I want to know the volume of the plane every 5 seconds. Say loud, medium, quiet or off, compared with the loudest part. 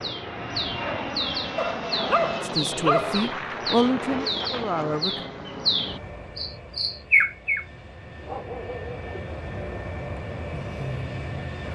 loud, medium, loud.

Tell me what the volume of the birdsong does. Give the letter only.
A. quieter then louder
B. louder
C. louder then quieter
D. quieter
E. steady
B.